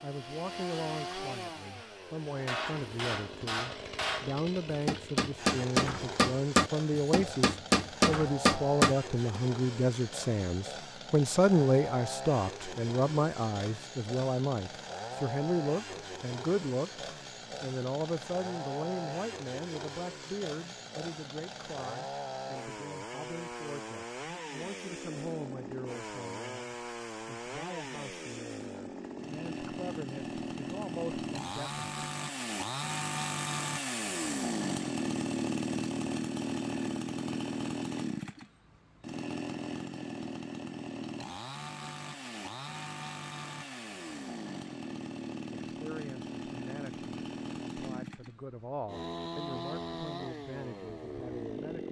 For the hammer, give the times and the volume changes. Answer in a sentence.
You can hear the hammer from 1.8 to 9.4 s, getting louder.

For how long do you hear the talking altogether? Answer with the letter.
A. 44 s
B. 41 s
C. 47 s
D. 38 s
D.